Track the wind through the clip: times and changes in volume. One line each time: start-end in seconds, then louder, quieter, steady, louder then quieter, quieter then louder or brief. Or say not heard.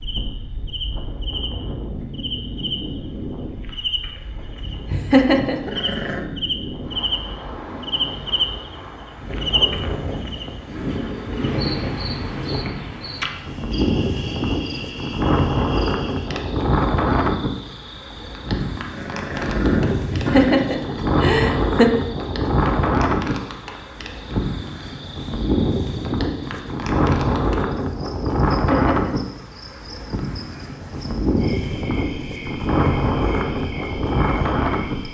0.0-35.0 louder.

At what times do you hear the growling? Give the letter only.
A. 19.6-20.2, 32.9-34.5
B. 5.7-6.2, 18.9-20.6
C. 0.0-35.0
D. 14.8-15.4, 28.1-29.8
B.